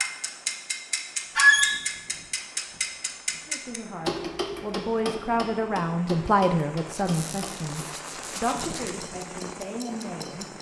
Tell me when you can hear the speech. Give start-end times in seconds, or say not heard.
3.5-10.5.